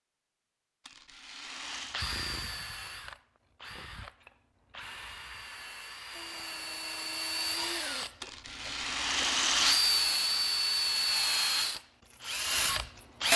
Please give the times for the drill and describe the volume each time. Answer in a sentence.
The drill can be heard from 1.9 to 13.3 s, getting louder.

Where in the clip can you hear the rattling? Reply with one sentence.
You can hear the rattling from 0.8 to 2.0 s and from 8.2 to 9.8 s.